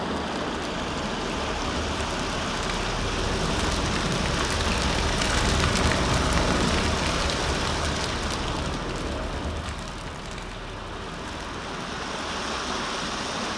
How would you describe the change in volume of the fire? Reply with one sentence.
The volume of the fire goes up, then down.